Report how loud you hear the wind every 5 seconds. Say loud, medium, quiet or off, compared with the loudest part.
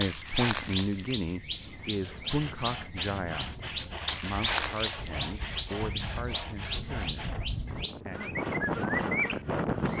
quiet, loud.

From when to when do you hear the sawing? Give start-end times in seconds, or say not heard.
1.8-9.9.